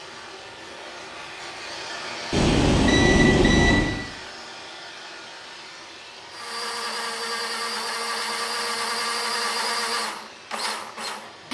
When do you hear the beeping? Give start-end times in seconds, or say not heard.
2.3-4.0.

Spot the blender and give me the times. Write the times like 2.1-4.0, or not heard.
6.3-11.4.